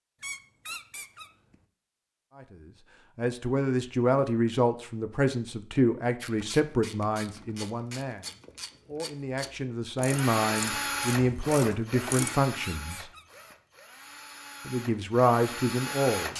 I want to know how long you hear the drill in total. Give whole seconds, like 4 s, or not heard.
6 s.